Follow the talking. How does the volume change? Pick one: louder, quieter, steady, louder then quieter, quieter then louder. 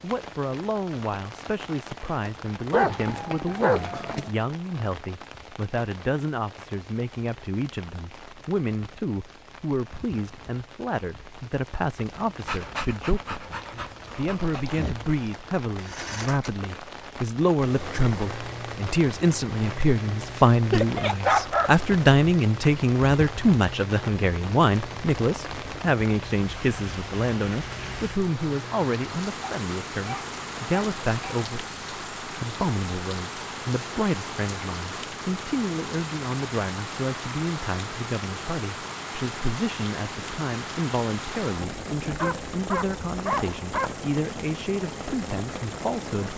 louder then quieter.